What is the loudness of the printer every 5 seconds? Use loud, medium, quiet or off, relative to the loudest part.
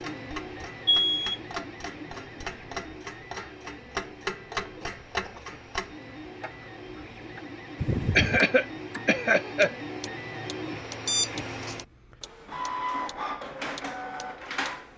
medium, medium, loud.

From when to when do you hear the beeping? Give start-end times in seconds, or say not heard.
0.8-1.4, 7.8-8.4, 11.1-11.8.